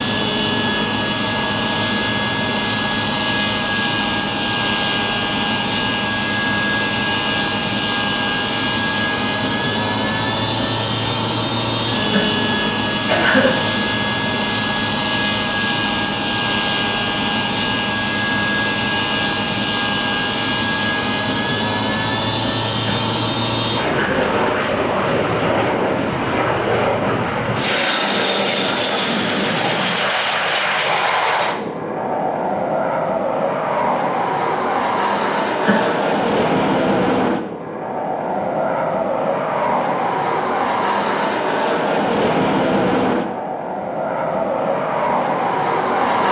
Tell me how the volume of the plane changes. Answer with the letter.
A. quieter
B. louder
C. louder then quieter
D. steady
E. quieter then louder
D.